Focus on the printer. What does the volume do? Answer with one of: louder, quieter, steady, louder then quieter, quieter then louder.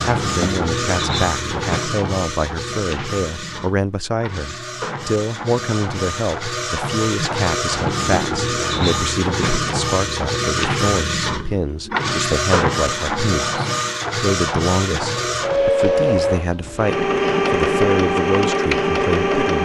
louder.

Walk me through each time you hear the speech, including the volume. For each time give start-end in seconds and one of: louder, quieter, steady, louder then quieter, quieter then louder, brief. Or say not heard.
0.0-19.6 steady.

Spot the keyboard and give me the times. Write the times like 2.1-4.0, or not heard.
not heard.